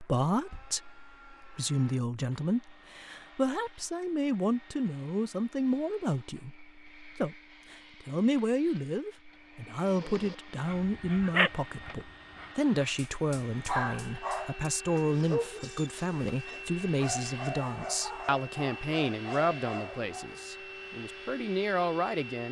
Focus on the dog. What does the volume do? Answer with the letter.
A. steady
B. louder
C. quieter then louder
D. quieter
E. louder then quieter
D.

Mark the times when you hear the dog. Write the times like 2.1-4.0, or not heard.
9.9-20.4.